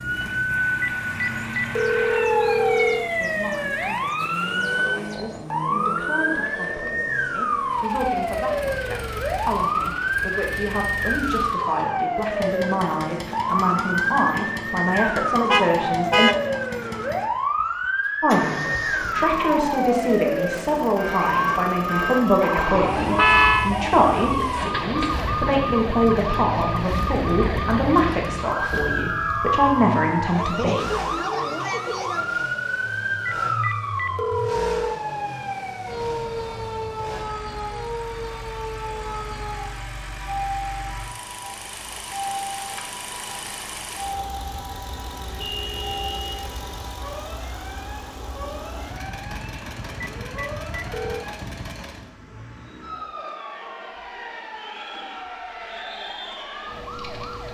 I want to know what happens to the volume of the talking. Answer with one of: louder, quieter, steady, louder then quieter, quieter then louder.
louder.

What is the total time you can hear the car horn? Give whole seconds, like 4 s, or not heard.
4 s.